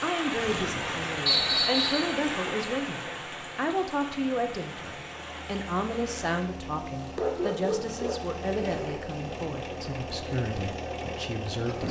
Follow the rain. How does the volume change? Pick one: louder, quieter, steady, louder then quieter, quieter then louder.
quieter.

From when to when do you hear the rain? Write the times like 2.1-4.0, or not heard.
0.0-6.5.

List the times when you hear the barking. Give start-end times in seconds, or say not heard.
7.2-8.2.